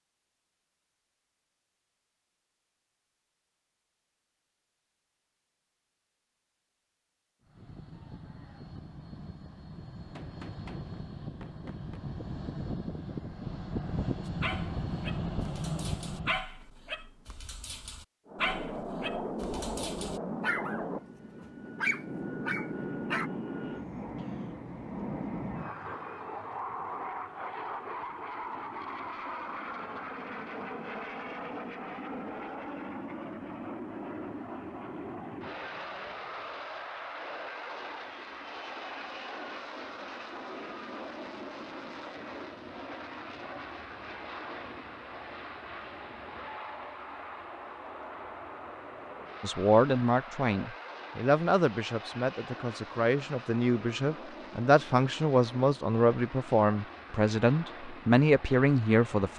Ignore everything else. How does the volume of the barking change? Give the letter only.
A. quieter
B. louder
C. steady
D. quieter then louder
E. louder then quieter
B.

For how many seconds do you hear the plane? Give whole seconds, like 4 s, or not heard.
50 s.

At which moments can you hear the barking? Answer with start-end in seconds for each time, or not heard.
14.2-23.3.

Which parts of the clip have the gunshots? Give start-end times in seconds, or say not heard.
10.2-12.0.